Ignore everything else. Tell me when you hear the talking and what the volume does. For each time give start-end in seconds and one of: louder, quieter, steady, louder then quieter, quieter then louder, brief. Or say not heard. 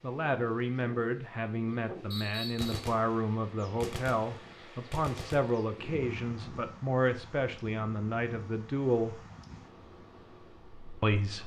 0.0-9.2 steady
11.0-11.4 brief.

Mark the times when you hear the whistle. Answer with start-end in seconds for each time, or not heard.
2.1-2.9.